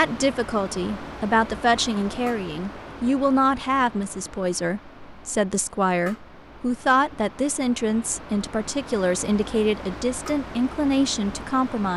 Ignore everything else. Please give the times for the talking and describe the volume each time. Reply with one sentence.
You can hear the talking from 0.0 to 11.9 s, at a steady volume.